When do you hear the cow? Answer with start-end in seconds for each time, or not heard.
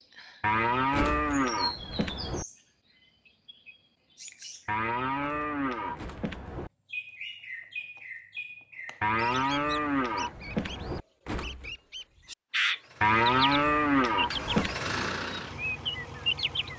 0.4-2.5, 4.7-6.7, 9.0-11.0, 13.0-14.8.